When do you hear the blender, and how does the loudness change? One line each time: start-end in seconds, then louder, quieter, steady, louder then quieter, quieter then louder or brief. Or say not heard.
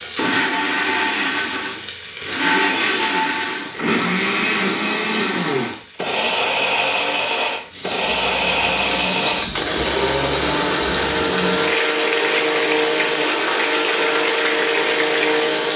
0.0-15.7 steady.